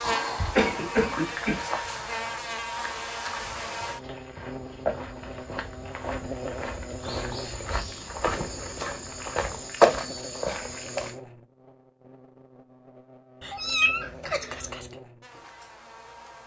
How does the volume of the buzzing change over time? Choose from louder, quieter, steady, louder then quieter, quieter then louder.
quieter.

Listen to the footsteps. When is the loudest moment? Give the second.
10 s.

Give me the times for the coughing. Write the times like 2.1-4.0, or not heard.
0.0-1.6.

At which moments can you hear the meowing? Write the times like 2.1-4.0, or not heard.
13.4-14.9.